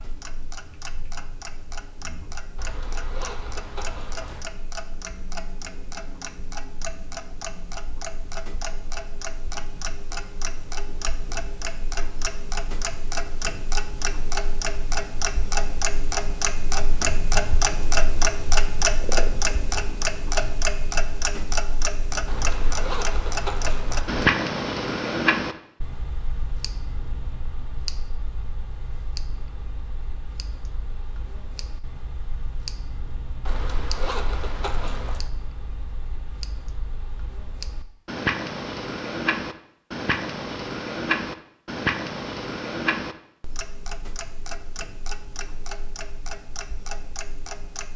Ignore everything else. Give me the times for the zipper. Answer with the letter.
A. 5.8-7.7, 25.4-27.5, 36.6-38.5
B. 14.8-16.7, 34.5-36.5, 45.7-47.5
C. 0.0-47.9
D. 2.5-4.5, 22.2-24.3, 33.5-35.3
D.